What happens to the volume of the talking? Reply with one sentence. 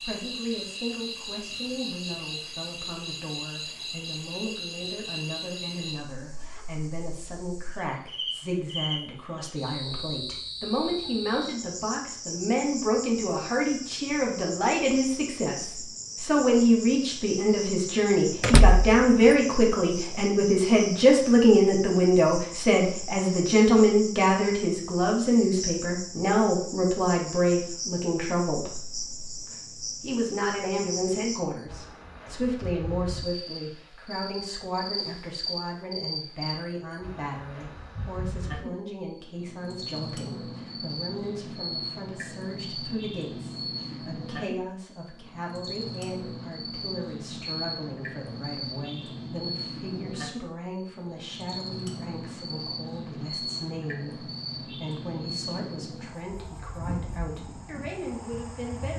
The volume of the talking goes up, then down.